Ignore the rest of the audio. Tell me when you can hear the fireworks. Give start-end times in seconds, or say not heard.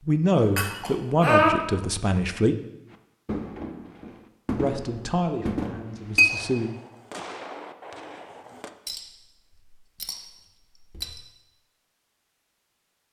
2.9-8.7.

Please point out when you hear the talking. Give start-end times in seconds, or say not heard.
0.1-2.5, 4.5-6.7.